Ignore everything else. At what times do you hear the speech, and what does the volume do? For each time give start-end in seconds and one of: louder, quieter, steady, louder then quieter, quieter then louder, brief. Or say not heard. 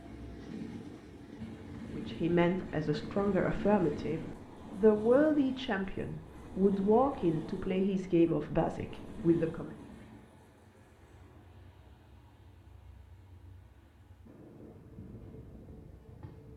1.9-9.8 steady.